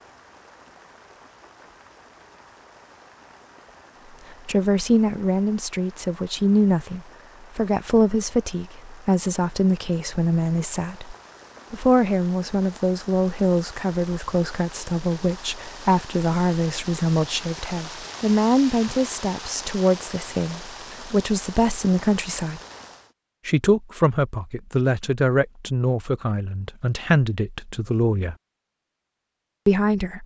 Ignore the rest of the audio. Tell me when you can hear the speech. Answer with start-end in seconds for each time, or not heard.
4.5-22.6, 23.4-28.4, 29.6-30.2.